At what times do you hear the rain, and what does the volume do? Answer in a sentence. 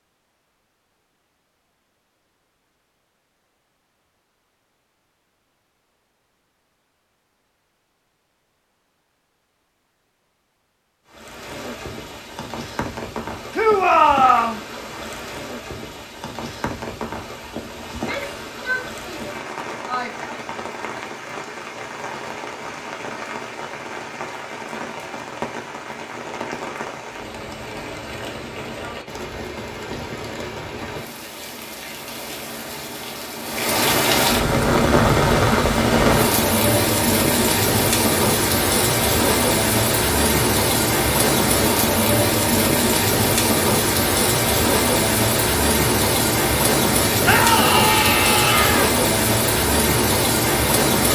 You can hear the rain from 11.1 to 51.1 s, getting louder.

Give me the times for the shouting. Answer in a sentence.
The shouting can be heard from 13.5 to 14.6 s, from 17.9 to 20.3 s and from 47.2 to 48.9 s.